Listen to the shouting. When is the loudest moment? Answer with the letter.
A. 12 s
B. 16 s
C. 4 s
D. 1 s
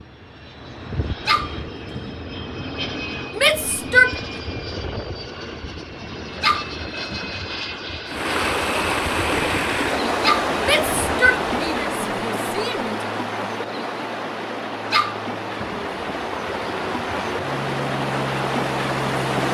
C.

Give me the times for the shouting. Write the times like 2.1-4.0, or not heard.
3.4-4.2, 10.6-13.1.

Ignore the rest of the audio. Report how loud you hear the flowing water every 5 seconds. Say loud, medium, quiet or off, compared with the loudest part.
off, loud, loud, loud.